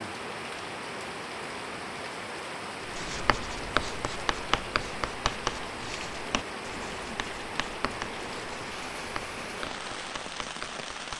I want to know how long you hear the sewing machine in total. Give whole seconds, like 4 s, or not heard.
not heard.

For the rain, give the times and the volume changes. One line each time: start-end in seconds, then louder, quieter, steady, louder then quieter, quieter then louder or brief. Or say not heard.
0.0-11.1 steady.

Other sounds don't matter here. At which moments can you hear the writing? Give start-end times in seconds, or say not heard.
2.9-11.1.